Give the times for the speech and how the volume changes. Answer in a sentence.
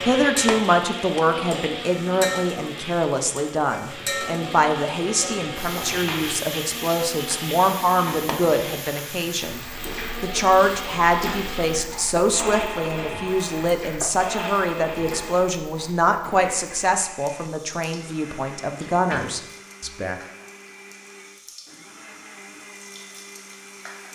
The speech can be heard from 0.0 to 20.1 s, at a steady volume.